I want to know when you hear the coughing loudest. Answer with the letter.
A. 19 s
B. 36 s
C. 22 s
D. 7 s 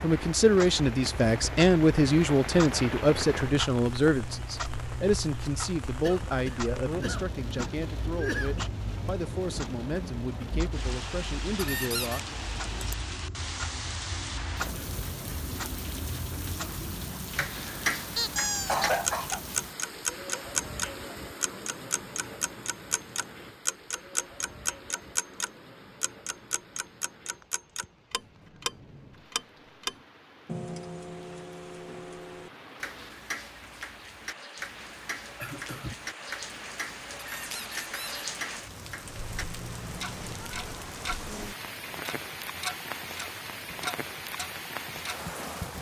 A.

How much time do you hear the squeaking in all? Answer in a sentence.
You can hear the squeaking for 2 seconds altogether.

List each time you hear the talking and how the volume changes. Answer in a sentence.
The talking can be heard from 0.0 to 12.2 s, getting quieter.